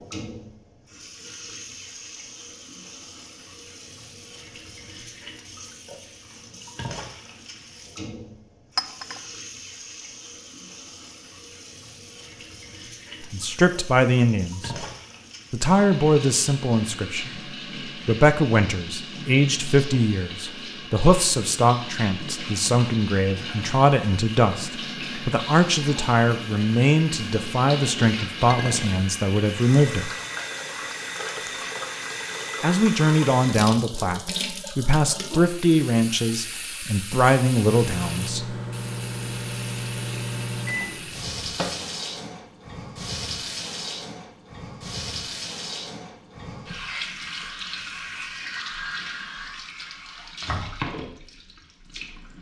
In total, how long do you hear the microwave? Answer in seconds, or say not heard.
4 s.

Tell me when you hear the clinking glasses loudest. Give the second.
9 s.